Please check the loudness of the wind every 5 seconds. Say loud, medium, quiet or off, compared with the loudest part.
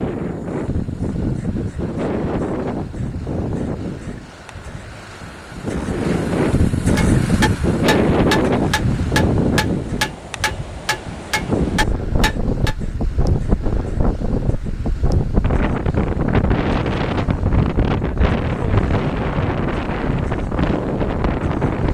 medium, loud, medium, loud, loud.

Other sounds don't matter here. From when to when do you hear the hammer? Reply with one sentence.
The hammer can be heard from 7.0 to 12.8 s.